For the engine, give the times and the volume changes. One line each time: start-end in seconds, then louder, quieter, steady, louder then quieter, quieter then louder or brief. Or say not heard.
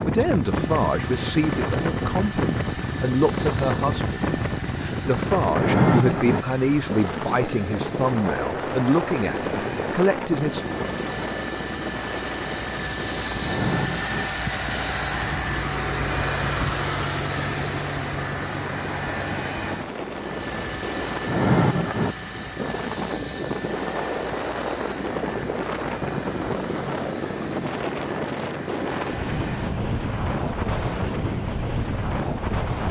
0.0-32.8 louder then quieter.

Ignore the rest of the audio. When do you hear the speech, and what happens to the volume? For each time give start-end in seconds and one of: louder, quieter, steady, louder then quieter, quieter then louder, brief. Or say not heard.
0.0-10.6 steady.